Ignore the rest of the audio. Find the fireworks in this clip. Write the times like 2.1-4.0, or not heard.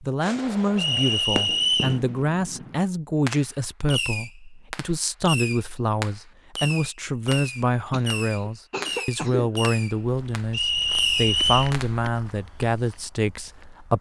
0.2-12.0.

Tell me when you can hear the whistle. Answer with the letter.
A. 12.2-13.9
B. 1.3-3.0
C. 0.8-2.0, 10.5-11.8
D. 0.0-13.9
C.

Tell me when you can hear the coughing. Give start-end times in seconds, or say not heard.
7.9-9.6.